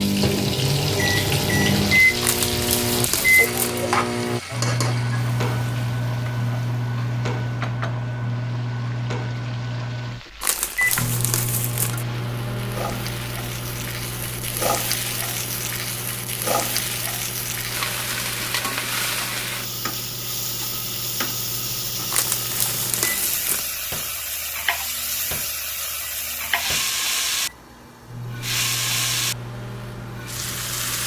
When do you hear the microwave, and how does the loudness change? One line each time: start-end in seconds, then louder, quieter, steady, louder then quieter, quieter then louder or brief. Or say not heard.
0.0-31.0 quieter.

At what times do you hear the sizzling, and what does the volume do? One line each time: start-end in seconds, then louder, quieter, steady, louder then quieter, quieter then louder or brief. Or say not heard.
0.0-31.0 quieter then louder.